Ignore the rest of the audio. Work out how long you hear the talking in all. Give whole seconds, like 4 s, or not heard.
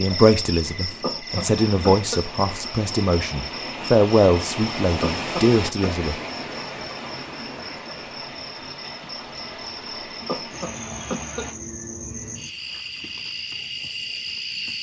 6 s.